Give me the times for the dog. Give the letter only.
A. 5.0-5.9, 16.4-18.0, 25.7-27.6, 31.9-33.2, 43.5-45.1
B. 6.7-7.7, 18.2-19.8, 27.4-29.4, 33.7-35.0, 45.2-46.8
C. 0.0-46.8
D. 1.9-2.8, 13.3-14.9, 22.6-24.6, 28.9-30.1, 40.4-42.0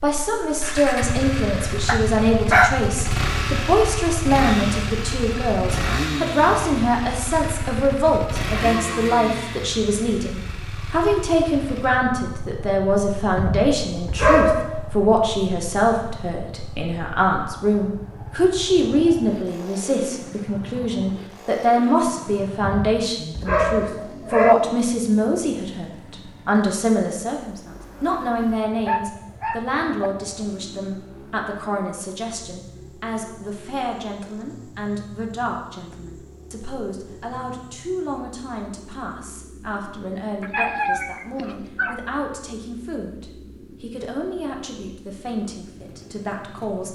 D.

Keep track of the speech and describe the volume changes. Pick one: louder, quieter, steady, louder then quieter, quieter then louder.
quieter.